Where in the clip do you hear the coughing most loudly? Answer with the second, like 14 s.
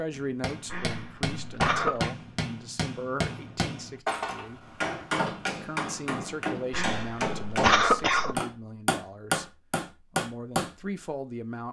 8 s.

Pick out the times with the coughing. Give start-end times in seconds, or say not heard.
0.7-2.1, 6.7-8.4.